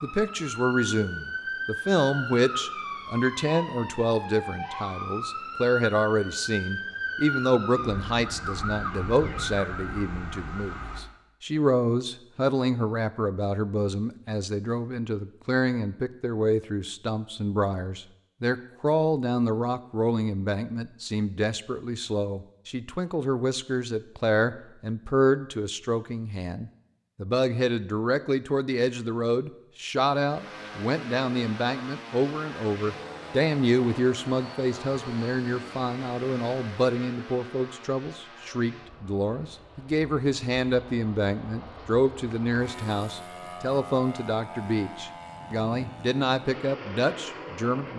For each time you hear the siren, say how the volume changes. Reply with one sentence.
You can hear the siren from 0.0 to 11.0 s, at a steady volume.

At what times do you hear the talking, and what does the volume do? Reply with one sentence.
You can hear the talking from 0.0 to 47.9 s, at a steady volume.